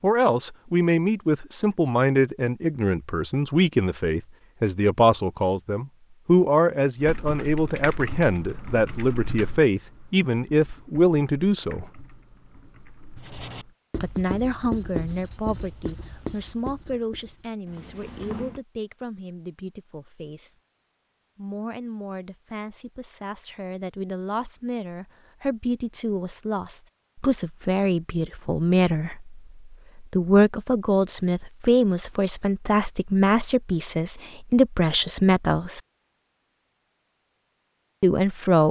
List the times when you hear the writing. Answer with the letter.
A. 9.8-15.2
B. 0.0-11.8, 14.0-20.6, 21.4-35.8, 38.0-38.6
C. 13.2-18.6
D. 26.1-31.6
C.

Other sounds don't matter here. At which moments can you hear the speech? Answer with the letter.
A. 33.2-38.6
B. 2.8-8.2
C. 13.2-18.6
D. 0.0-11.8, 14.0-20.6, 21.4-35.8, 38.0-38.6
D.